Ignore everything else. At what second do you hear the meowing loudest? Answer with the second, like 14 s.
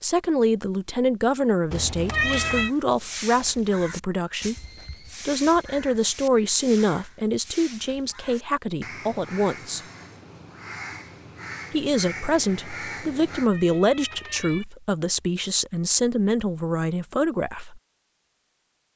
2 s.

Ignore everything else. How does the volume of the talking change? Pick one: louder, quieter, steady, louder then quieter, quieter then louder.
steady.